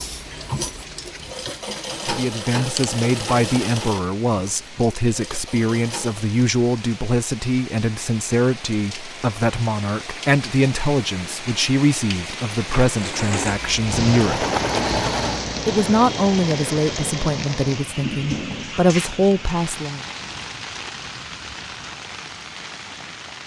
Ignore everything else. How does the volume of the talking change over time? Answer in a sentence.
The loudness of the talking stays about the same.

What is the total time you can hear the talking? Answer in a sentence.
You can hear the talking for 17 seconds altogether.